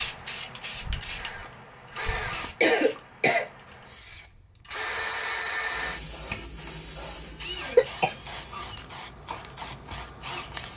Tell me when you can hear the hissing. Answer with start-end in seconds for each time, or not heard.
0.0-10.7.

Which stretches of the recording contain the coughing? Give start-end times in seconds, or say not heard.
2.6-3.5, 7.6-8.7.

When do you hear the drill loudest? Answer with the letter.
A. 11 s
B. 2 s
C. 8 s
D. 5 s
D.